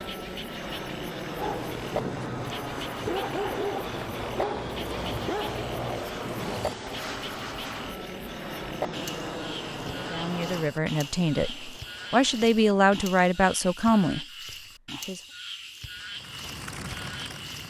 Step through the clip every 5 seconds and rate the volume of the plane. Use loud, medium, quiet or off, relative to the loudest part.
loud, loud, medium, medium.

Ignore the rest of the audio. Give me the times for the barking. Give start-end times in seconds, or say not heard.
1.4-6.8.